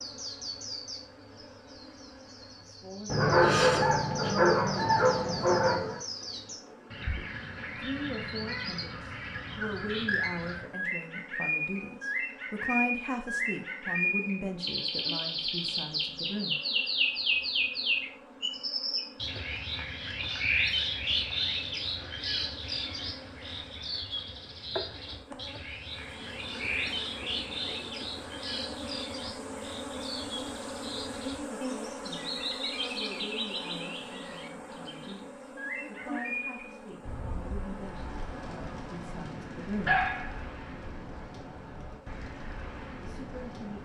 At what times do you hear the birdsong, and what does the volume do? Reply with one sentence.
The birdsong can be heard from 0.0 to 43.8 s, getting louder then quieter.